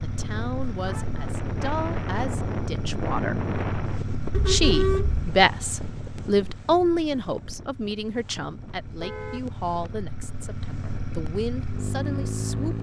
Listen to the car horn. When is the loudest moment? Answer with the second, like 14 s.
5 s.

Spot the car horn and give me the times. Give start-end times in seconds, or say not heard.
0.8-1.2, 4.3-5.3, 8.8-9.4.